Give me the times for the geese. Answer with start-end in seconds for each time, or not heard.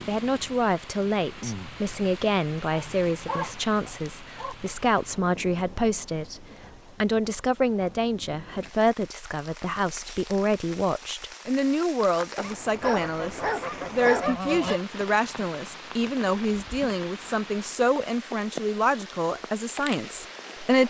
12.8-14.8.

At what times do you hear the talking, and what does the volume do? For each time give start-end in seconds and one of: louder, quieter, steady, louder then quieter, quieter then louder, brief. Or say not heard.
0.1-20.8 steady.